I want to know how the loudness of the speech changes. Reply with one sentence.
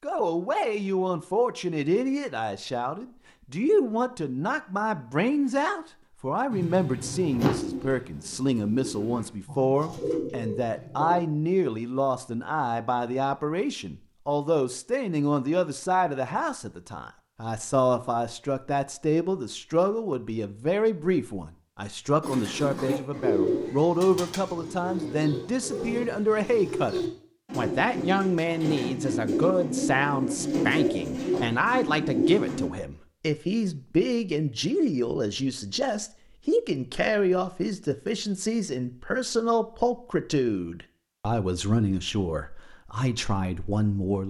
The loudness of the speech stays about the same.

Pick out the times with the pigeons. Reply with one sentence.
The pigeons can be heard from 6.5 to 11.2 s and from 22.2 to 32.7 s.